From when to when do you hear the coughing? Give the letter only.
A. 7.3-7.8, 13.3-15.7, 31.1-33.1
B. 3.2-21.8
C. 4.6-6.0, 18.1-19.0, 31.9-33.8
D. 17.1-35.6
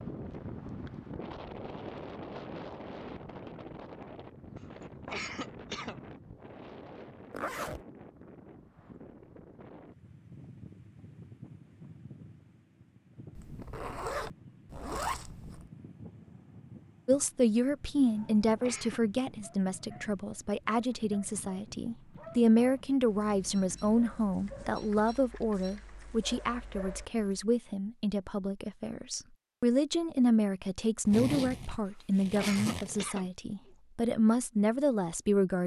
C.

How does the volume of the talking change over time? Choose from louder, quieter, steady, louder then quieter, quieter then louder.
steady.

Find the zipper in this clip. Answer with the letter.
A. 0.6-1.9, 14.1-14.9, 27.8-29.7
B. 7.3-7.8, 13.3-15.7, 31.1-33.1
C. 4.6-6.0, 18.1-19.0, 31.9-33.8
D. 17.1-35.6
B.